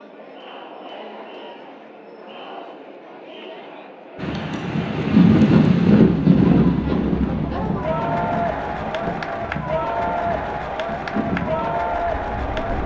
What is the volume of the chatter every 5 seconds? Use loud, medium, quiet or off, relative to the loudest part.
quiet, loud, loud.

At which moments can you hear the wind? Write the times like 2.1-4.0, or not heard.
4.2-12.8.